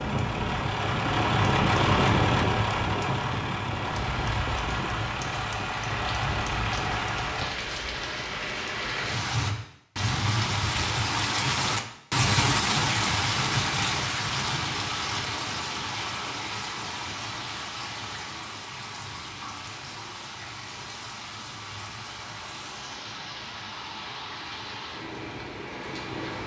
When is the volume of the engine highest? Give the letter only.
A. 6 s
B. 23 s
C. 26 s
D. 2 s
D.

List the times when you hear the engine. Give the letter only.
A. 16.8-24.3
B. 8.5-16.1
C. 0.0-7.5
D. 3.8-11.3
C.